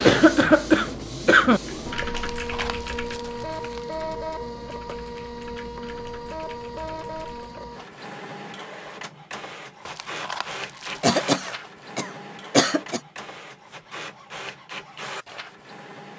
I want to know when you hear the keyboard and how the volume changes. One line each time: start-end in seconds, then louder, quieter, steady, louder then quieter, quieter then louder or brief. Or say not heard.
1.6-7.7 quieter.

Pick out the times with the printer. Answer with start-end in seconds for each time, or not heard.
0.0-16.1.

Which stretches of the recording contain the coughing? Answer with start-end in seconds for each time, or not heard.
0.0-1.6, 11.0-13.0.